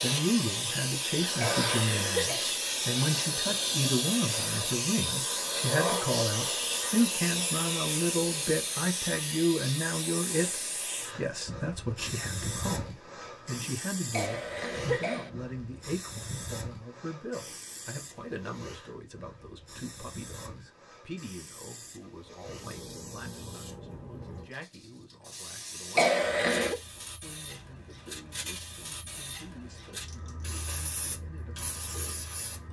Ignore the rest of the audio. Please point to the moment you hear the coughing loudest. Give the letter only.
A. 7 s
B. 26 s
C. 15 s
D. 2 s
B.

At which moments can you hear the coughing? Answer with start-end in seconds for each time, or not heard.
1.4-2.5, 14.1-15.3, 25.9-26.8.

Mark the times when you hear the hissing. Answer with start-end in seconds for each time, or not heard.
0.0-32.6.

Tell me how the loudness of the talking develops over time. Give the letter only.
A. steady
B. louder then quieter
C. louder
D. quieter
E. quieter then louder
D.